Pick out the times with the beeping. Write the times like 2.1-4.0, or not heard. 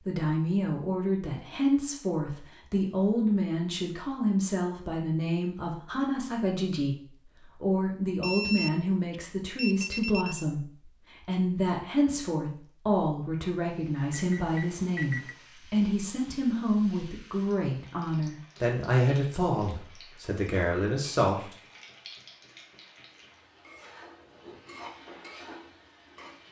8.2-10.4, 14.1-15.3.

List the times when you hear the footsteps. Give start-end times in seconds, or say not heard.
not heard.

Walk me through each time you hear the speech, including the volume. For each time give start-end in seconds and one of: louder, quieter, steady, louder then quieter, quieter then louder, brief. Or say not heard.
0.0-21.5 steady.